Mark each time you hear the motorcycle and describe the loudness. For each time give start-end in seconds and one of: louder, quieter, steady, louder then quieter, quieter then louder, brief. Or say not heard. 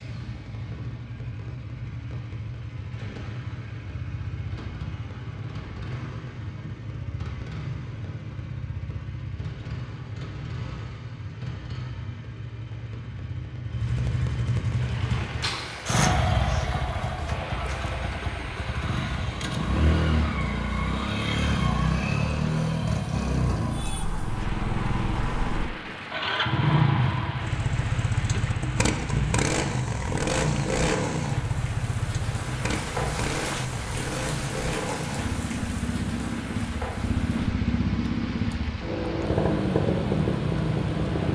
0.0-41.3 louder.